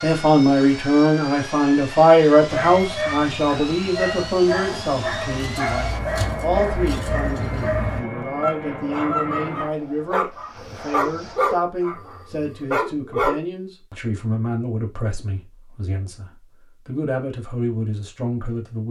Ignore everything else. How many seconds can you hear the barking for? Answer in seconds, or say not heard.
11 s.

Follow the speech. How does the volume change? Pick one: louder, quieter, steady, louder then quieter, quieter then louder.
quieter.